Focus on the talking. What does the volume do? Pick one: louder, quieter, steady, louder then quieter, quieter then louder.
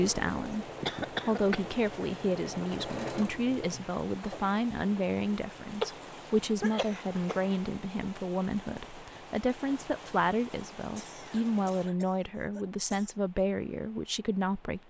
steady.